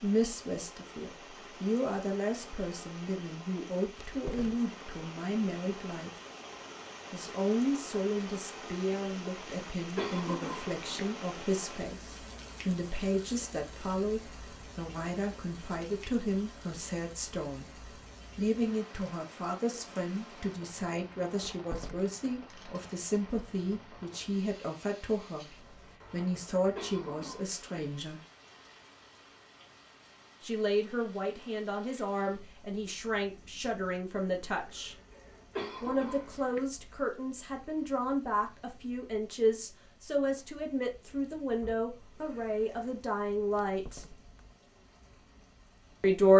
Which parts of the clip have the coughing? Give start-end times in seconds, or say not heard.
9.9-10.8, 26.8-27.8, 35.5-36.6.